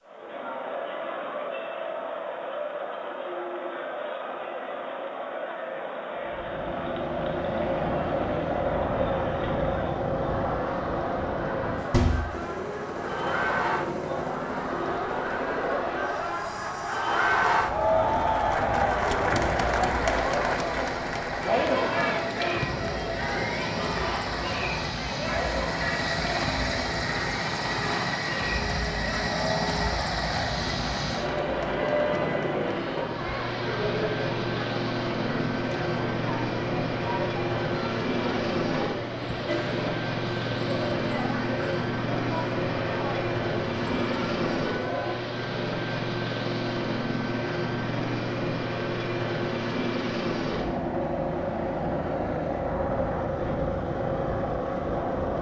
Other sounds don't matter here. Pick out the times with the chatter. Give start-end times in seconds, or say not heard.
0.0-45.2.